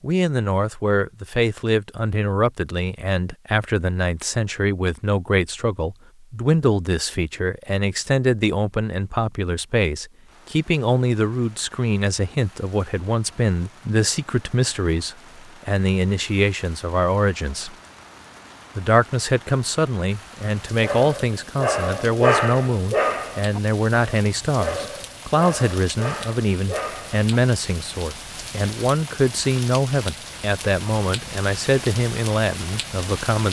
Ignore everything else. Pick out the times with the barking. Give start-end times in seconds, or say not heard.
20.6-27.3.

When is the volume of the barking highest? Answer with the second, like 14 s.
22 s.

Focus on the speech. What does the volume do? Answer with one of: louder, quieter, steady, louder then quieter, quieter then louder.
steady.